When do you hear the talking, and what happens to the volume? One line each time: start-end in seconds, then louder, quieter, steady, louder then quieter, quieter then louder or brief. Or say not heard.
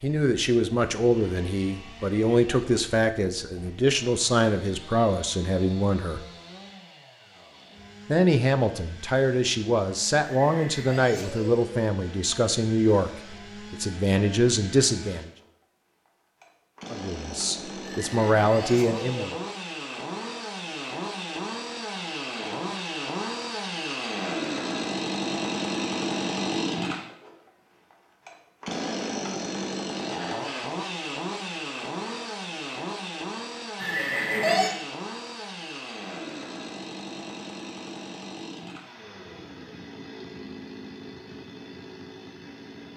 0.0-6.2 steady
8.1-15.3 steady
16.9-19.4 brief.